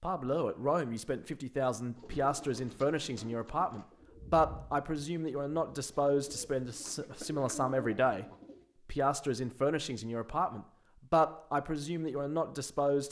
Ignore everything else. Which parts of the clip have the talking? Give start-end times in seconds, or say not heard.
0.0-8.2, 8.8-13.0.